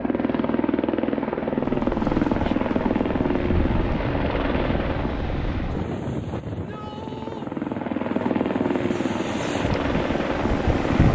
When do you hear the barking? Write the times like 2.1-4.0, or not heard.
not heard.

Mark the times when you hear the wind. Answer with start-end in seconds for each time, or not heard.
1.6-11.0.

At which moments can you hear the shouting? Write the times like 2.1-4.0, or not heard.
6.5-7.5.